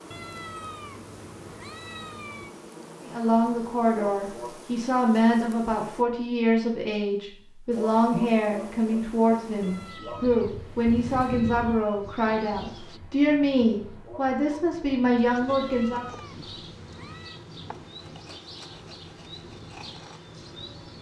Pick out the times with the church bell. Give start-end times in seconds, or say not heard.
not heard.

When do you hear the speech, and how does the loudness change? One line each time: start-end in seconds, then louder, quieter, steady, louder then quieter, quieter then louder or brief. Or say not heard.
3.0-16.1 steady.